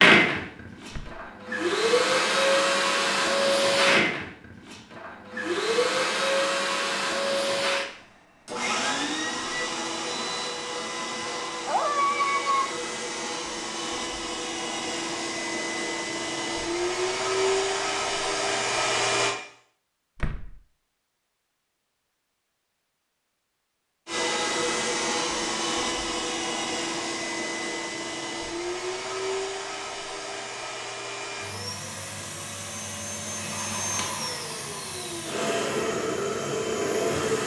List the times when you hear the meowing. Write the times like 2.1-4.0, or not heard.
11.2-12.8.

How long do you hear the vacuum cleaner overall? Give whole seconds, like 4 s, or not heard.
33 s.